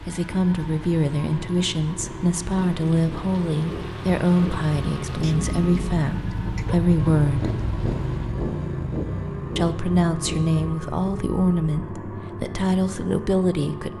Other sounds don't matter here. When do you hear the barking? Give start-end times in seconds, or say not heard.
5.2-6.8.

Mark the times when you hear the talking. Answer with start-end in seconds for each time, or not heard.
0.0-7.5, 9.6-13.9.